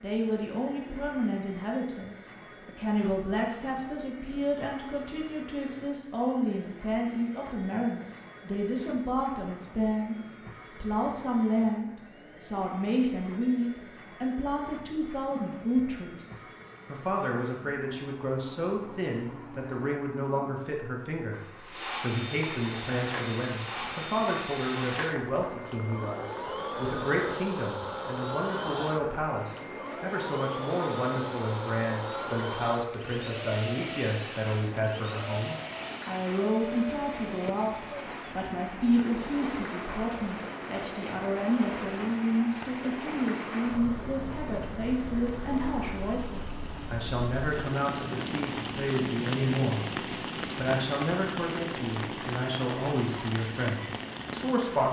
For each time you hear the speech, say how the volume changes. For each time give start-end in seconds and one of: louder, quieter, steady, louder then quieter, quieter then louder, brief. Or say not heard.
0.0-54.8 steady.